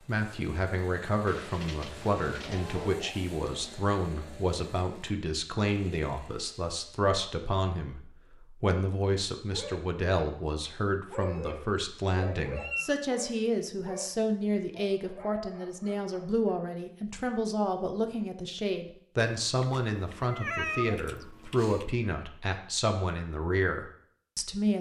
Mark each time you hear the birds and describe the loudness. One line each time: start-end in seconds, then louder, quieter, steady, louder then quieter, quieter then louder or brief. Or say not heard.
not heard.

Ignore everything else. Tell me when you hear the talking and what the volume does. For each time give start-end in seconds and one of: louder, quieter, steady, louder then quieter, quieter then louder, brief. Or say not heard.
0.1-24.7 steady.